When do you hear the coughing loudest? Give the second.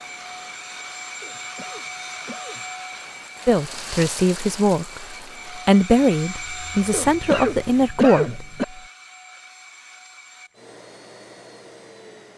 8 s.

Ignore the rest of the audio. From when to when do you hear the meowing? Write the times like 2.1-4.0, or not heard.
not heard.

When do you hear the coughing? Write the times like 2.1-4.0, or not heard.
1.2-2.6, 6.9-8.7.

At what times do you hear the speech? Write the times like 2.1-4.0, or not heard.
3.5-8.4.